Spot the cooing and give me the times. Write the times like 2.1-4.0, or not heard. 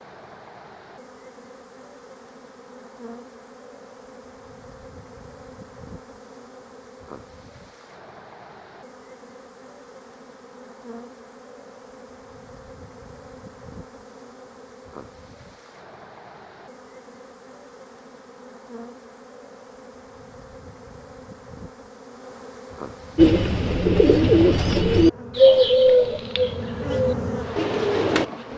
23.1-28.2.